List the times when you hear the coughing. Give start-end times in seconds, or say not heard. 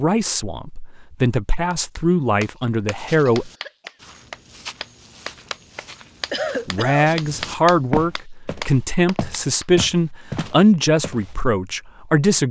3.2-4.0, 6.3-7.2.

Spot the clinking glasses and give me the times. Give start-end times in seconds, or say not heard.
not heard.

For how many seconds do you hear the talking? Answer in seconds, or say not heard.
9 s.